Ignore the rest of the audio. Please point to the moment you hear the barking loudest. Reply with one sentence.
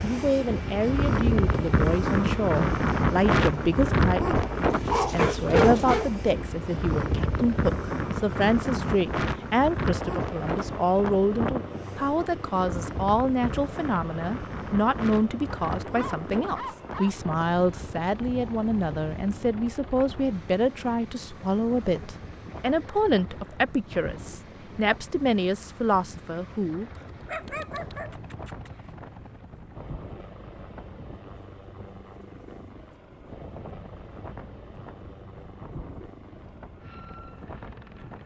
The loudest moment of the barking is at 6 seconds.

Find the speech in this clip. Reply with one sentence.
You can hear the speech from 0.0 to 26.9 s.